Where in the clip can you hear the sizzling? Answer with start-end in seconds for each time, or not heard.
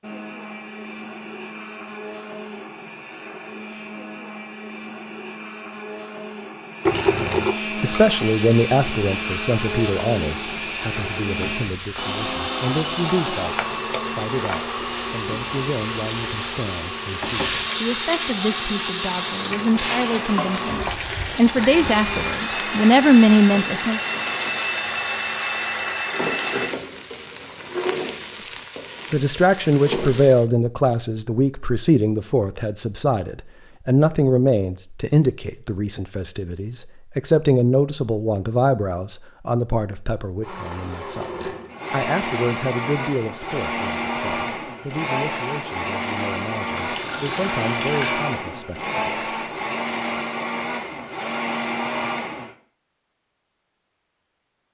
7.8-30.4.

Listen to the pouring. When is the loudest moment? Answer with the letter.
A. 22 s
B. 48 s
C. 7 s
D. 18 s
C.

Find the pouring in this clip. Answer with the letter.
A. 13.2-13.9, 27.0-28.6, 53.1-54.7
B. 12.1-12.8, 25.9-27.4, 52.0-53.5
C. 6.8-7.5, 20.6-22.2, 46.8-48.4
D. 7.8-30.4
C.